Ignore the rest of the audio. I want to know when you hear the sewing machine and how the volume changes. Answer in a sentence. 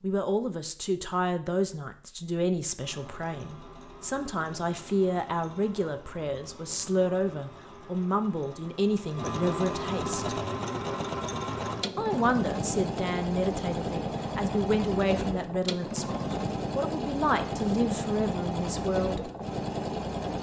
You can hear the sewing machine from 2.8 to 20.3 s, getting louder.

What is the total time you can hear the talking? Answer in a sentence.
The talking can be heard for 18 seconds in total.